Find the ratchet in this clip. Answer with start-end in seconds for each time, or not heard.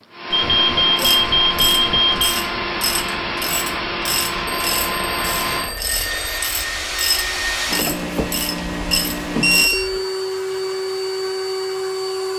0.9-10.0.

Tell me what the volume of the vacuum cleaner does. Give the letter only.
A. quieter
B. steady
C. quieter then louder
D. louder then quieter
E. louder
B.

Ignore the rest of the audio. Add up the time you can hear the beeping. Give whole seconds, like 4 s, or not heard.
5 s.